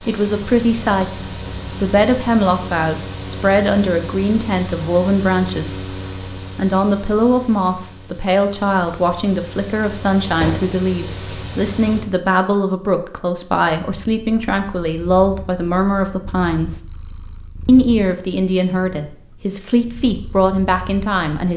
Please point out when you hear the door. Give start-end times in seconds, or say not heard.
10.4-11.4.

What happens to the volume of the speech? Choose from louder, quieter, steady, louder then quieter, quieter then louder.
steady.